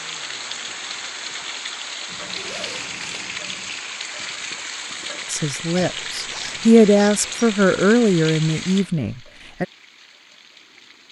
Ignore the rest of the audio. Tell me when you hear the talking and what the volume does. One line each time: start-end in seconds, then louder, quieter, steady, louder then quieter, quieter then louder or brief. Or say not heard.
5.3-9.7 louder then quieter.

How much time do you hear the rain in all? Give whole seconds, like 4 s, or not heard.
11 s.